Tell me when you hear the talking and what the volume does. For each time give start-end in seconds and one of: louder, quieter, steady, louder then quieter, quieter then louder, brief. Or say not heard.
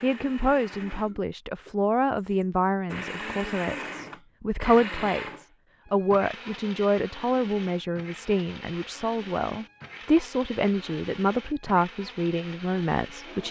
0.0-13.4 steady.